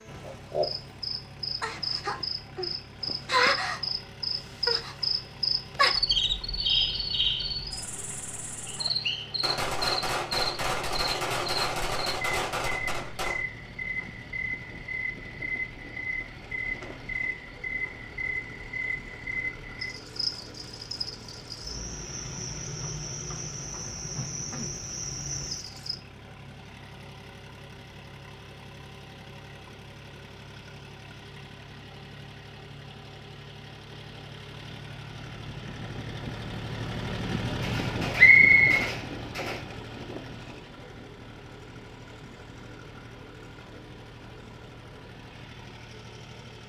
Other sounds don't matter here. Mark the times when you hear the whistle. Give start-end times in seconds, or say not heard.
8.7-9.3, 38.1-38.9.